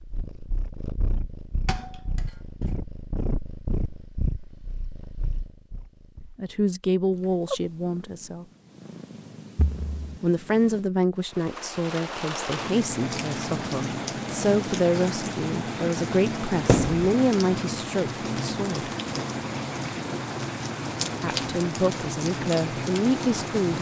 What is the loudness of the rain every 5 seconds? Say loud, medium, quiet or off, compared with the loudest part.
off, off, loud, loud, loud.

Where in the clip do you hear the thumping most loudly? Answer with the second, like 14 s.
17 s.